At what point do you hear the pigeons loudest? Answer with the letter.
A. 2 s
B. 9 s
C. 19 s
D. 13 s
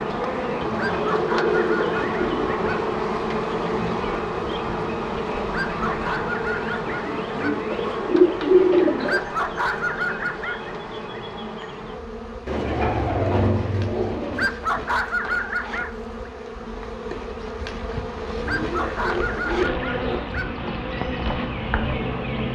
B.